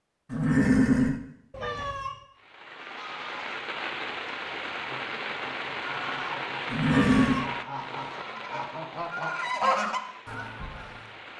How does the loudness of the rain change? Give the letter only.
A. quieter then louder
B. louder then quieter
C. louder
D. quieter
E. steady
D.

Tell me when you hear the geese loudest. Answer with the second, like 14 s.
10 s.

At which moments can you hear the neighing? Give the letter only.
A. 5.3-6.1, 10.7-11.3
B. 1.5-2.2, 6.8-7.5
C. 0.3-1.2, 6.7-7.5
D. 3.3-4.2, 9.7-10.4
C.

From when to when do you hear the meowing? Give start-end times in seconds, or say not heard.
1.5-2.2, 6.8-7.5.